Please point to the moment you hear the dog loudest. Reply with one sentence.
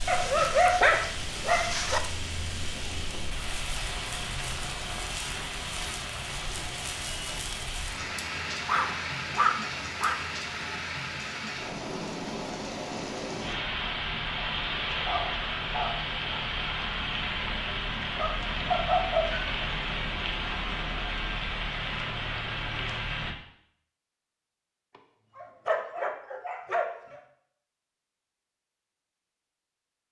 The loudest moment of the dog is at 1 second.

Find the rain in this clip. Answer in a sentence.
You can hear the rain from 0.0 to 23.4 s.